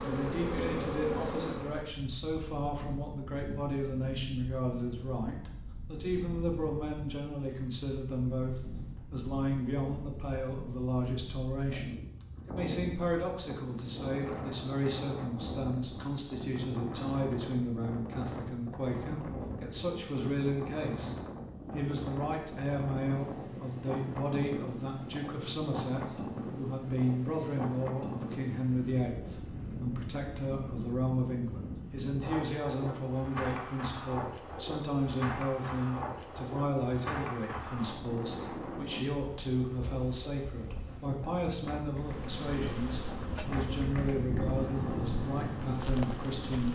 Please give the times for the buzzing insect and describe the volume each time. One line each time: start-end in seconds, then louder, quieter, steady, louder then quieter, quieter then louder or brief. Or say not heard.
0.0-1.9 brief
42.0-46.7 quieter then louder.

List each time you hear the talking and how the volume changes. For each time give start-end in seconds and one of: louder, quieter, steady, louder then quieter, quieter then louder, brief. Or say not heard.
0.0-46.7 steady.